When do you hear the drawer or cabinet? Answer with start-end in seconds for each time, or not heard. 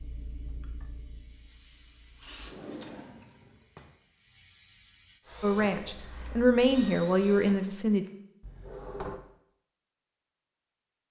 2.4-3.9, 8.4-9.2.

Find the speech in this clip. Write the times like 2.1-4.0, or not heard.
5.4-8.1.